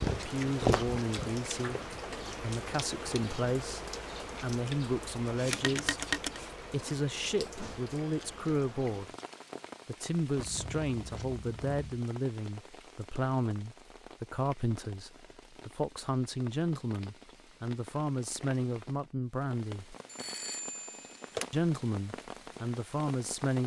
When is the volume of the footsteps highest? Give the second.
1 s.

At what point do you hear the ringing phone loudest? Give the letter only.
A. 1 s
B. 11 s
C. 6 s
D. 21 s
C.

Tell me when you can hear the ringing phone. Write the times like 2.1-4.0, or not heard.
5.5-6.4, 10.3-11.8, 20.1-21.4.